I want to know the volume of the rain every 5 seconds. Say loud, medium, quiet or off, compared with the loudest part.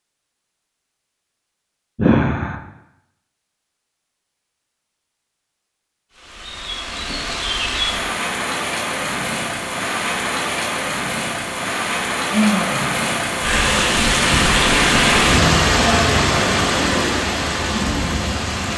off, medium, loud, loud.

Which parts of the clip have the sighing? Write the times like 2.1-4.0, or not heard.
1.9-2.5, 12.3-12.9.